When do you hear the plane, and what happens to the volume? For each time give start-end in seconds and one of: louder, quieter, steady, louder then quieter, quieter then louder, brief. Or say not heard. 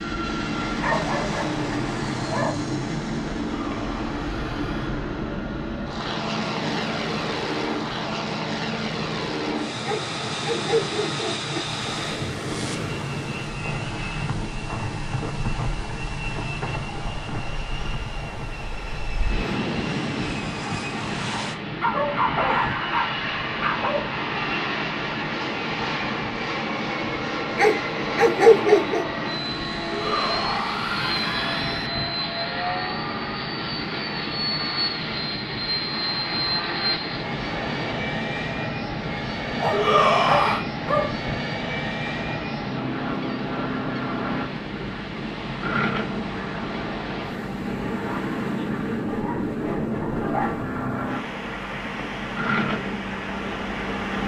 0.0-54.2 steady.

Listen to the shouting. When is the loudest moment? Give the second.
40 s.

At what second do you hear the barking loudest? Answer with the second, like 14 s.
29 s.